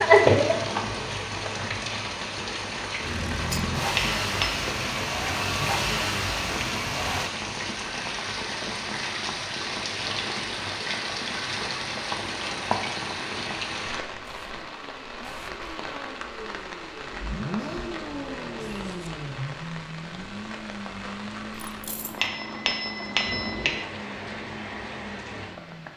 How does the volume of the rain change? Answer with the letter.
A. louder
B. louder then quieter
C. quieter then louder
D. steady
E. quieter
E.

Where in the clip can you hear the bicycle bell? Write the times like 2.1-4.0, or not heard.
4.0-4.6, 22.1-23.9.